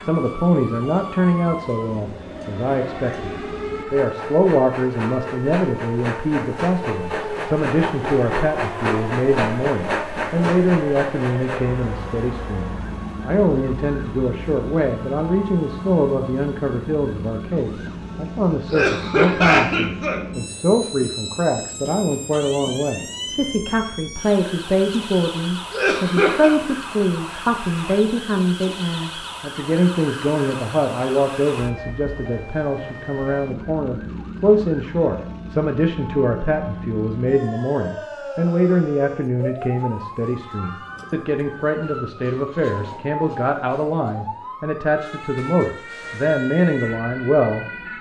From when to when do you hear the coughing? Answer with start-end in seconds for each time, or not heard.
18.7-20.2, 25.7-26.5.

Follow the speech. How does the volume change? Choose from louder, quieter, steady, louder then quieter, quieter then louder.
steady.